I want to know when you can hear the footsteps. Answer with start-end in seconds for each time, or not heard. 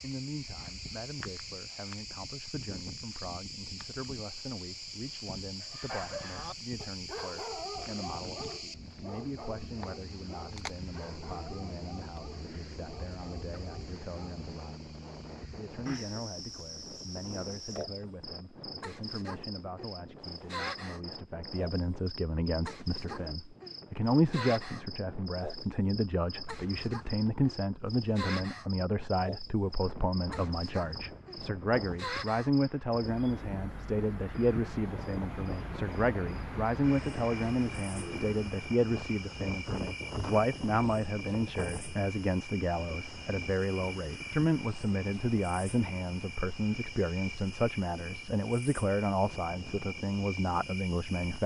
not heard.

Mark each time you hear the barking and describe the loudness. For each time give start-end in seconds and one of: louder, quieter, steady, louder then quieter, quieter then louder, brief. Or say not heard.
5.6-14.3 quieter.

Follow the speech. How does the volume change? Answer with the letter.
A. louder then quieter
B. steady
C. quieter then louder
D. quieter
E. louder
E.